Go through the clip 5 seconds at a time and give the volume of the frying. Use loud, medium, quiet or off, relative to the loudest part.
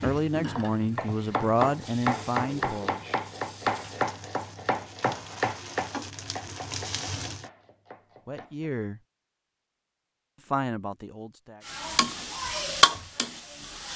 quiet, medium, loud.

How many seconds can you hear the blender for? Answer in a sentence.
The blender can't be heard in this clip.